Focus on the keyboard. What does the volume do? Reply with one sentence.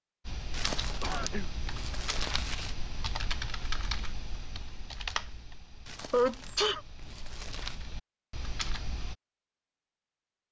The loudness of the keyboard goes down, then up.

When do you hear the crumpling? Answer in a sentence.
The crumpling can be heard from 0.5 to 2.8 s and from 5.8 to 7.8 s.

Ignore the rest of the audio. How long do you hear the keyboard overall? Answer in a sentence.
You can hear the keyboard for 9 seconds altogether.